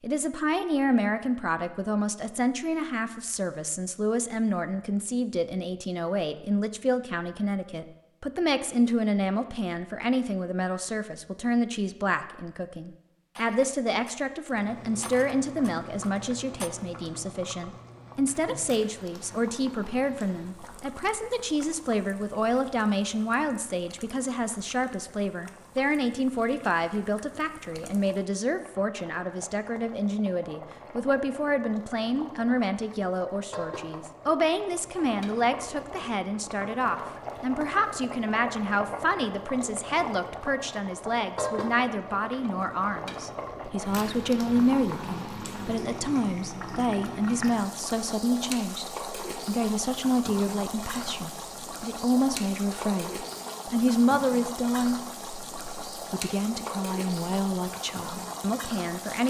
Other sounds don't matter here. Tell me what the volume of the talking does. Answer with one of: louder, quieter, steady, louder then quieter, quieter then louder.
steady.